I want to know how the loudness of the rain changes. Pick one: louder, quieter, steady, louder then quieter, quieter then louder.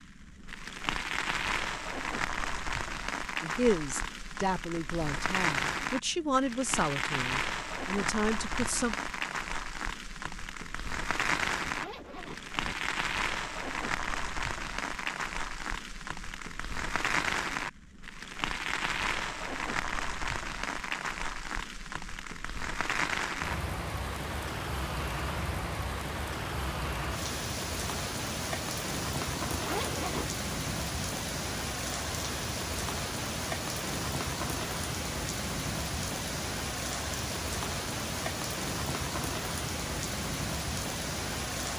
steady.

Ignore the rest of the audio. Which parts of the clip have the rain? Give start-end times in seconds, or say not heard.
0.0-41.7.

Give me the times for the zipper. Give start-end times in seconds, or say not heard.
11.4-12.8, 29.5-30.4.